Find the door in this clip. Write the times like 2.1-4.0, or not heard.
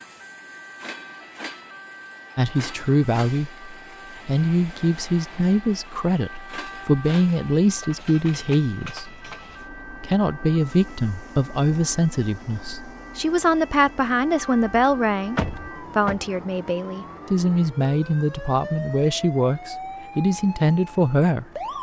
15.3-16.2.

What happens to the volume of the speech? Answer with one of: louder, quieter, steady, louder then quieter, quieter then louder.
steady.